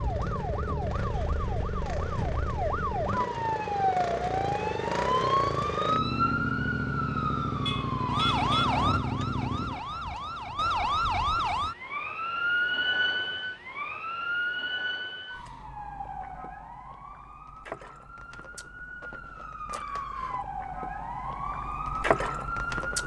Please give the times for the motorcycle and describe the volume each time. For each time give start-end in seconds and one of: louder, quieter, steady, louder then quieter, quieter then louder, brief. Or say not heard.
0.0-9.8 louder.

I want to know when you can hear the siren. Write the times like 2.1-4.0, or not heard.
0.0-23.0.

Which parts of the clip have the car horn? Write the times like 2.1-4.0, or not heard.
7.7-8.7.